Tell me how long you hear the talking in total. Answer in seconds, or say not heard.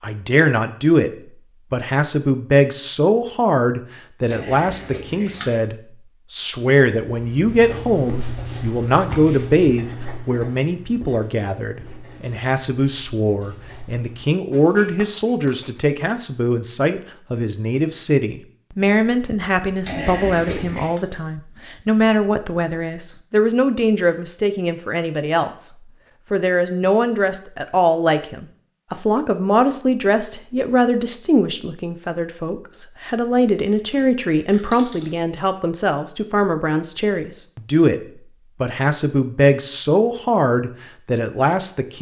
40 s.